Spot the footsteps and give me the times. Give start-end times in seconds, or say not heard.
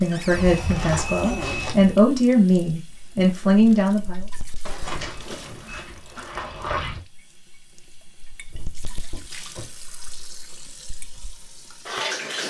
0.0-1.9, 4.8-7.0.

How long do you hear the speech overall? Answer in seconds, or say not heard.
4 s.